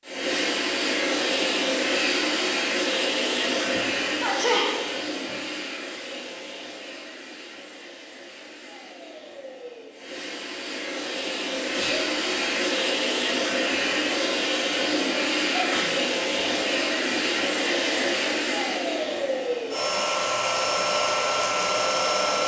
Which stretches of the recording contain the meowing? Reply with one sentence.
You can't hear the meowing here.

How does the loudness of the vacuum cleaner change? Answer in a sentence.
The loudness of the vacuum cleaner goes down, then up.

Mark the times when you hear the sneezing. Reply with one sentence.
You can hear the sneezing from 3.7 to 5.3 s, from 11.7 to 12.2 s and from 15.5 to 17.2 s.